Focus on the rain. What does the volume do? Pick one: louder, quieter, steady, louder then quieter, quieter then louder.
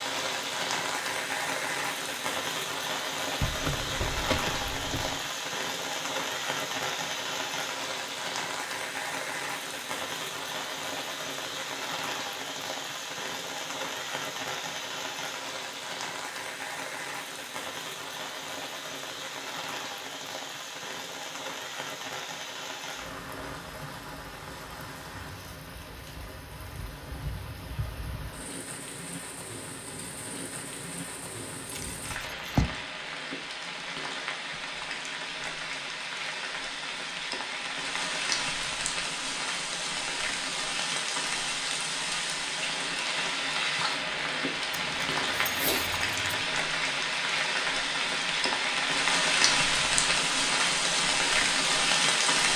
quieter then louder.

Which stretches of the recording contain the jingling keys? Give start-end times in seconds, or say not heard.
3.4-5.2, 31.6-32.7, 44.8-46.4.